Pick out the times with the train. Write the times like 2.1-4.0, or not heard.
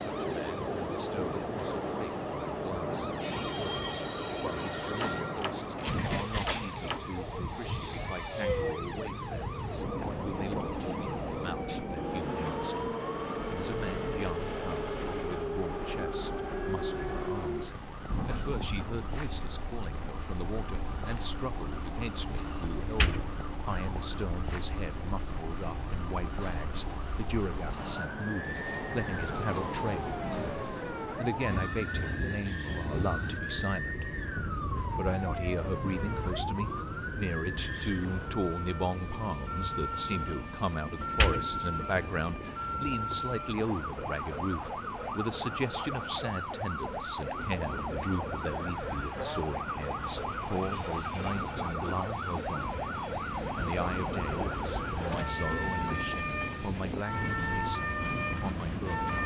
0.0-59.2.